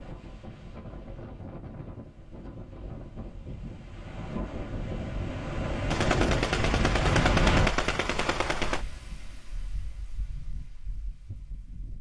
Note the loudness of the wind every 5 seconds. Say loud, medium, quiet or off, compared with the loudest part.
medium, loud, quiet.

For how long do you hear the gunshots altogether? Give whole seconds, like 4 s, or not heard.
3 s.